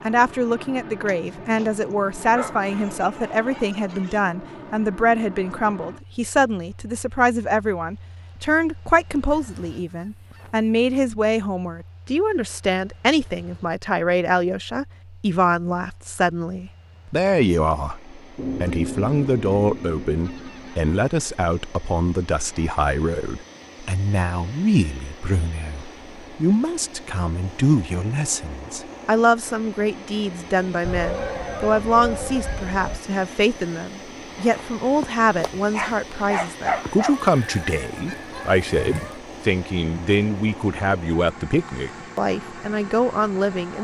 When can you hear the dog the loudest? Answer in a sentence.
The volume of the dog peaks at 37 seconds.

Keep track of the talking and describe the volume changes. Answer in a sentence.
The volume of the talking stays about the same.